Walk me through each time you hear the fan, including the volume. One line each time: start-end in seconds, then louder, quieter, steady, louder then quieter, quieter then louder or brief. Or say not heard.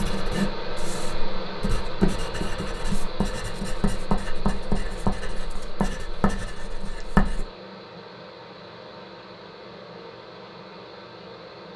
0.0-11.7 quieter.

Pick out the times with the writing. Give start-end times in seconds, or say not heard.
0.0-7.5.